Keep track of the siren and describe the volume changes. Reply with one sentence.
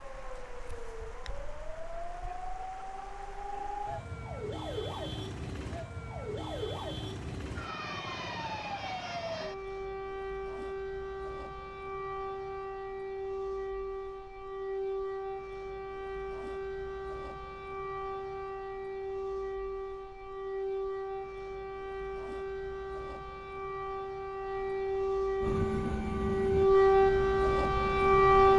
The volume of the siren goes up.